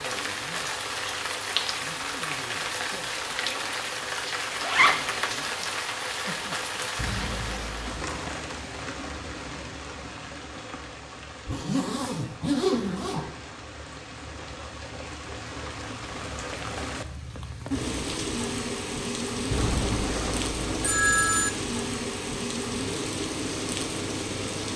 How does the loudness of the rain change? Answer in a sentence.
The volume of the rain goes down, then up.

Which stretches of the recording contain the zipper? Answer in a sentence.
You can hear the zipper from 4.6 to 5.2 s, from 11.4 to 13.2 s and from 19.5 to 21.1 s.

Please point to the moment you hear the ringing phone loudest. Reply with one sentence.
The volume of the ringing phone peaks at 21 seconds.